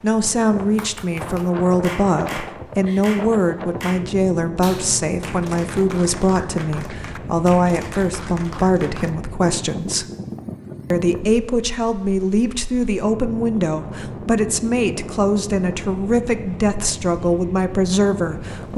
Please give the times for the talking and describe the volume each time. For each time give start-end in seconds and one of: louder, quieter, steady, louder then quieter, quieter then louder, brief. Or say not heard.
0.0-10.1 steady
10.9-18.7 steady.